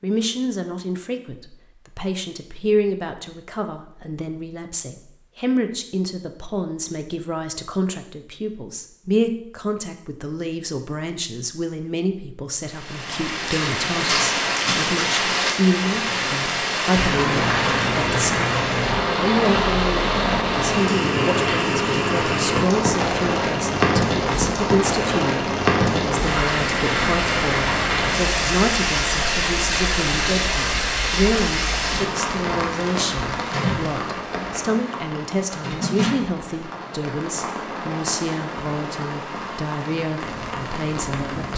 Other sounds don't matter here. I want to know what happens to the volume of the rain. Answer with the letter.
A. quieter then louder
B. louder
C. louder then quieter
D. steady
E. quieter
E.